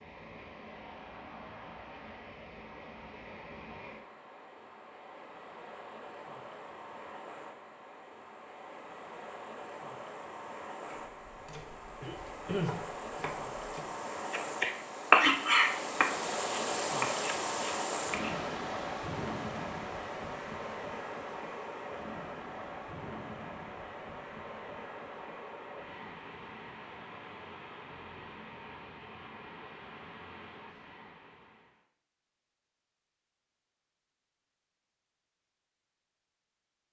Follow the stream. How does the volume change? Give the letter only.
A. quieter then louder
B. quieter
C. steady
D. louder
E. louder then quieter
E.